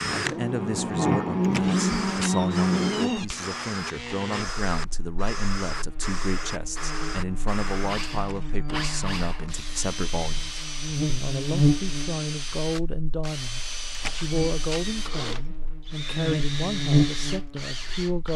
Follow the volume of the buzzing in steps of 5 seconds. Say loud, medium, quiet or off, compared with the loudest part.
loud, quiet, loud, loud.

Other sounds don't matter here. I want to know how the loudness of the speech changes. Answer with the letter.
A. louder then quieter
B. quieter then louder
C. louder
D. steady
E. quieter
D.